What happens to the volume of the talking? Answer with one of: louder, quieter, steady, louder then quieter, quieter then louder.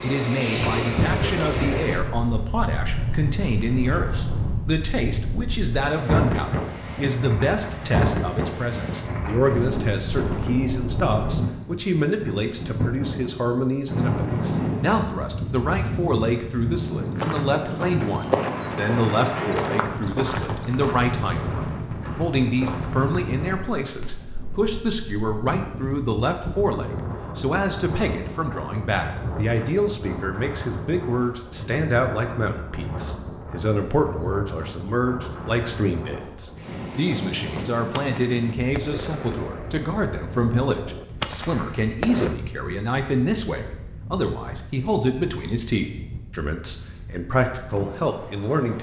steady.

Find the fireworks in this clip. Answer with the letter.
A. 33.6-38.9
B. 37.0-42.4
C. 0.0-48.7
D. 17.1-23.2
B.